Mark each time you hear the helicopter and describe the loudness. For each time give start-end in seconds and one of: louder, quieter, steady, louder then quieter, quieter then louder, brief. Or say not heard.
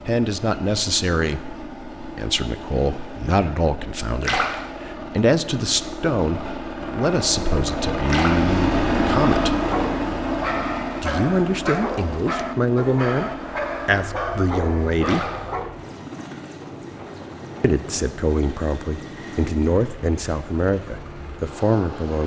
0.0-22.2 louder then quieter.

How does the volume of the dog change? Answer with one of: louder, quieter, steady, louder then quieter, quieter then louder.
steady.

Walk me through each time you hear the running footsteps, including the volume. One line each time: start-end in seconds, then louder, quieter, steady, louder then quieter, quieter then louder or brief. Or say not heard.
not heard.